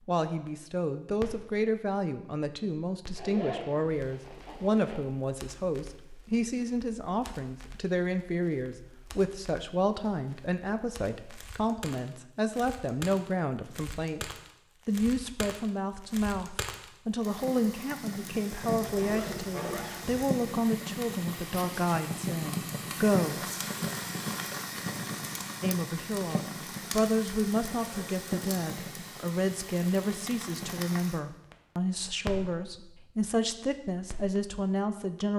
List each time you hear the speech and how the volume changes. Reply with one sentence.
You can hear the speech from 0.1 to 23.4 s, at a steady volume; and from 25.6 to 35.3 s, at a steady volume.